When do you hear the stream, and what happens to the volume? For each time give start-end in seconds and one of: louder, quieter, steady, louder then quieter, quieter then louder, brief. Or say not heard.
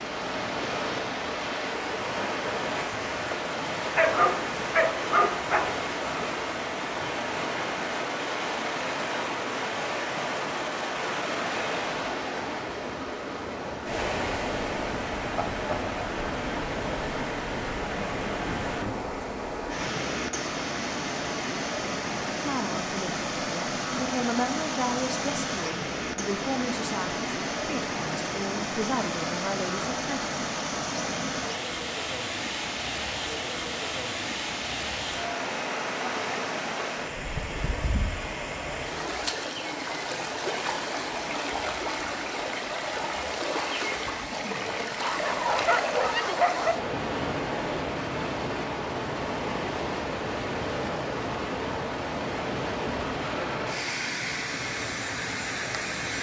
0.0-56.1 steady.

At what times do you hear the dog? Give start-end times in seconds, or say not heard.
4.0-5.8, 45.0-46.8.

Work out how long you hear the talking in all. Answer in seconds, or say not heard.
8 s.